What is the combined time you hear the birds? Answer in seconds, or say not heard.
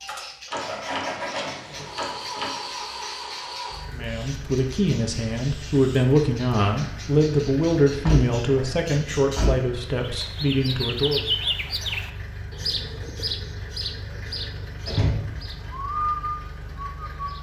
17 s.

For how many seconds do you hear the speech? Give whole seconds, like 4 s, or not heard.
7 s.